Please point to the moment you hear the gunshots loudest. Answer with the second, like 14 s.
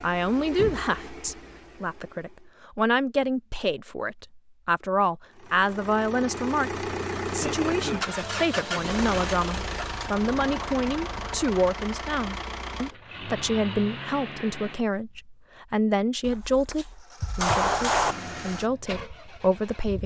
18 s.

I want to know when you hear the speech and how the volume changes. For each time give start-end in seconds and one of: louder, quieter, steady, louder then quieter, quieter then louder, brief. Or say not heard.
0.0-20.0 steady.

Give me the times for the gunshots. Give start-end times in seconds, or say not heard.
16.2-18.1.